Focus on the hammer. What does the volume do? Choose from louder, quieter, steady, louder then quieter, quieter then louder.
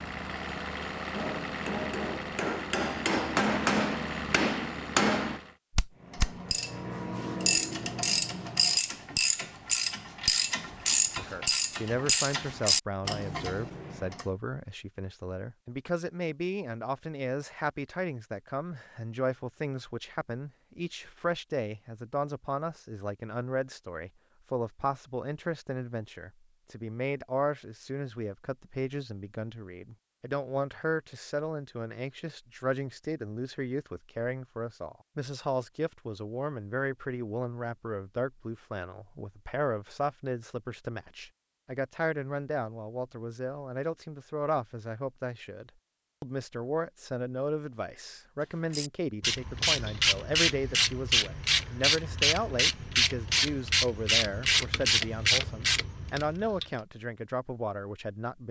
louder.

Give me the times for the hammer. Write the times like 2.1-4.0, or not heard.
1.1-6.3.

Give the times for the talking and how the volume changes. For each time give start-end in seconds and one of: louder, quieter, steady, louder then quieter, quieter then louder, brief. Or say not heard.
11.2-58.4 steady.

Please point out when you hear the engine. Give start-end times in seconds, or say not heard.
0.0-5.6.